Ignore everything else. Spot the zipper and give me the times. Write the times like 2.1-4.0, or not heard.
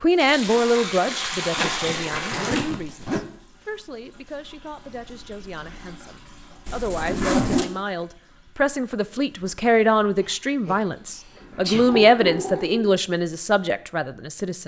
1.6-3.2, 6.7-7.7, 11.1-12.7.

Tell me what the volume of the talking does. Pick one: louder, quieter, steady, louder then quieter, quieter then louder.
quieter then louder.